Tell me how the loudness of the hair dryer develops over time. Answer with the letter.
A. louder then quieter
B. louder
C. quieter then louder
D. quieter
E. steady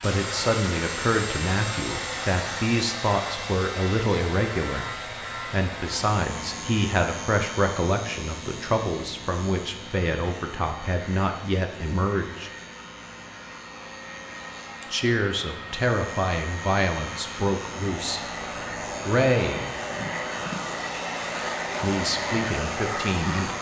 C.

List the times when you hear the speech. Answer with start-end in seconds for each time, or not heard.
0.0-12.5, 14.9-18.2, 19.1-19.6, 21.8-23.5.